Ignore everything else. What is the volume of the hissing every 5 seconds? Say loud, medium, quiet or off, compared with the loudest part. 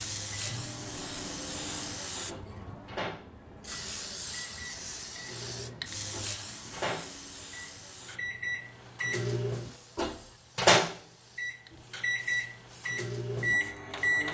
loud, loud, quiet.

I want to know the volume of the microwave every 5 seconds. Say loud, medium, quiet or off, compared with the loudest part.
quiet, medium, loud.